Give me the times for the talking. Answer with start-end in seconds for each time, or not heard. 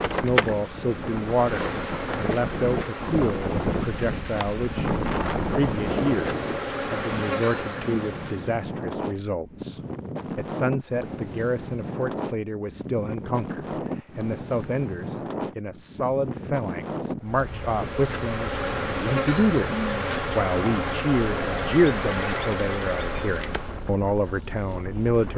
0.0-25.3.